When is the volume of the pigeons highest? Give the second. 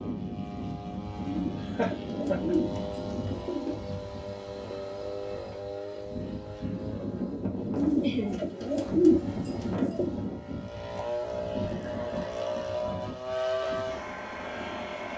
9 s.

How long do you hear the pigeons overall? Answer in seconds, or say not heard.
5 s.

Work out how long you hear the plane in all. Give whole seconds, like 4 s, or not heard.
15 s.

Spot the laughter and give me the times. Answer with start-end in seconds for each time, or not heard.
1.6-2.5, 8.0-8.4, 11.6-12.8.